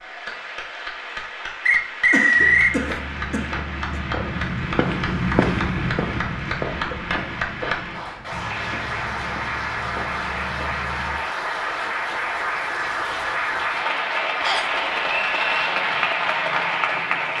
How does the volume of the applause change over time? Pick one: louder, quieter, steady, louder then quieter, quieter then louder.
louder.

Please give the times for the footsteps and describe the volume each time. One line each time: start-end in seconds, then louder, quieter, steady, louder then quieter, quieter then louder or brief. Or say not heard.
2.3-11.2 louder then quieter.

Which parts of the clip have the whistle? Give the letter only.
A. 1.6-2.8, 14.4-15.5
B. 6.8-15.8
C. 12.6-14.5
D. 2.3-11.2
A.